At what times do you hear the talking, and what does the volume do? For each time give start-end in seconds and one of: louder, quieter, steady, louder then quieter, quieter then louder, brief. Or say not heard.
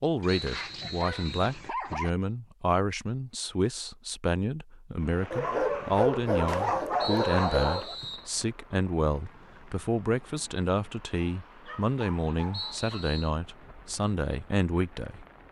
0.0-15.2 steady.